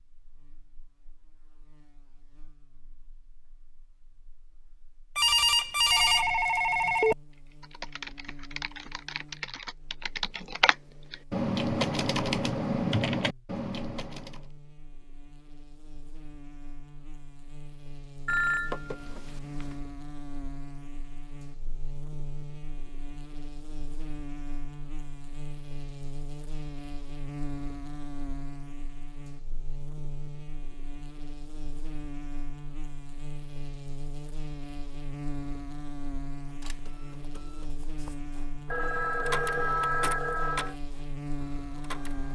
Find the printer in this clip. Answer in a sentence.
You can hear the printer from 36.5 to 42.2 s.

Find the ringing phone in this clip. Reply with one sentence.
The ringing phone can be heard from 5.2 to 7.2 s, from 18.2 to 19.8 s and from 38.6 to 40.8 s.